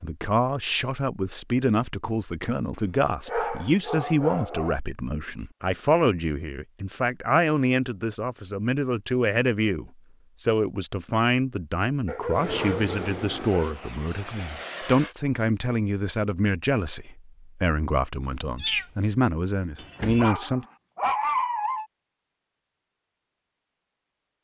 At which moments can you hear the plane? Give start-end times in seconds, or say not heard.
12.3-15.2.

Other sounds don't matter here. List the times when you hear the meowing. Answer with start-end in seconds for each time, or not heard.
18.2-18.9.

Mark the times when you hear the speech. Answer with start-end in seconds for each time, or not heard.
0.0-20.6.